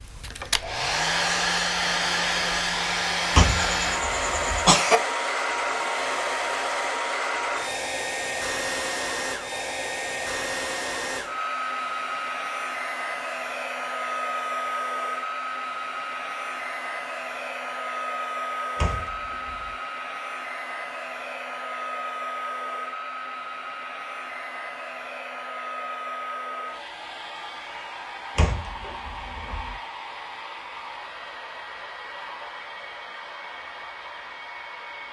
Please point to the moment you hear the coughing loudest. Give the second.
5 s.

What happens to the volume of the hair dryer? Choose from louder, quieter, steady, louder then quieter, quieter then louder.
quieter.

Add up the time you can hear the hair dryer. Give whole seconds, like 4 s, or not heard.
35 s.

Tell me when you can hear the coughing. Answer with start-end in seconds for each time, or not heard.
3.4-5.0.